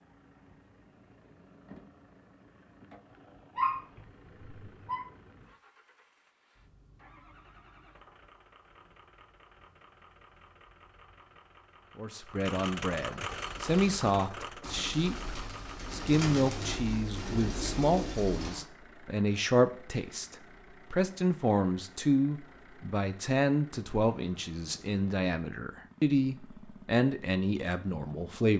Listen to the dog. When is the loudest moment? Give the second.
4 s.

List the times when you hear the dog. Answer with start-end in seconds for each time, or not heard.
3.5-5.0.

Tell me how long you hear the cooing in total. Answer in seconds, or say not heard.
5 s.